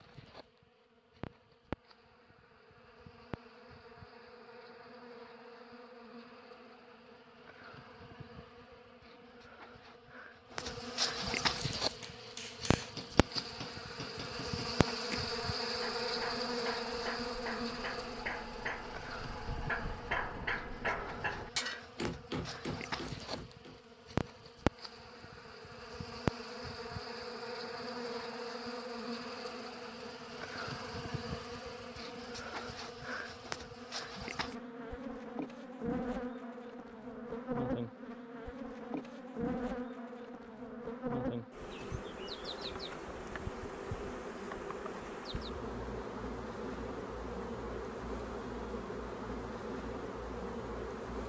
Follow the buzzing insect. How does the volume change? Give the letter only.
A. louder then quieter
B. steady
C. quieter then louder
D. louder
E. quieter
D.